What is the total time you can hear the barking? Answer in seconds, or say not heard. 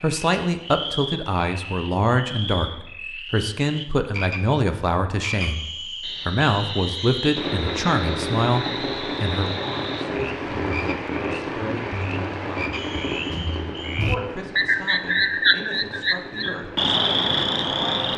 not heard.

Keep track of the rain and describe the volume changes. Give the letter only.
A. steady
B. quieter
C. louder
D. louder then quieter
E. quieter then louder
B.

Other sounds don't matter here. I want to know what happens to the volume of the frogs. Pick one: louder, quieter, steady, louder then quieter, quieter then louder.
louder.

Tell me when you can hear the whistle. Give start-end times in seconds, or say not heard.
5.3-7.4, 12.7-14.2.